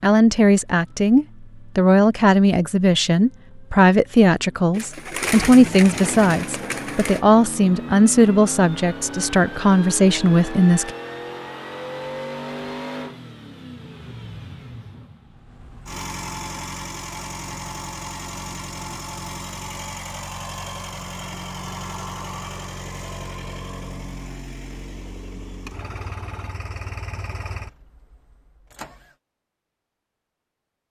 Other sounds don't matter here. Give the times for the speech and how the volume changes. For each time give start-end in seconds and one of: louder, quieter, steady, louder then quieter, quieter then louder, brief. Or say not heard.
0.0-10.9 steady.